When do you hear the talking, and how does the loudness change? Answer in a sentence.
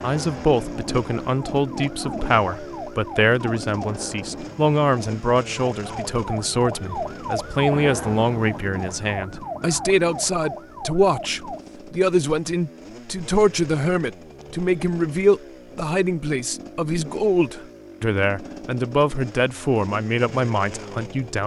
The talking can be heard from 0.0 to 21.4 s, at a steady volume.